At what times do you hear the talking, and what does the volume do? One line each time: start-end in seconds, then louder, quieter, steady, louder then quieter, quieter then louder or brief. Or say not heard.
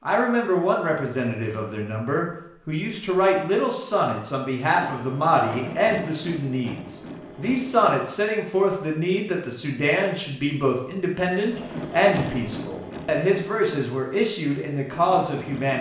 0.1-15.7 steady.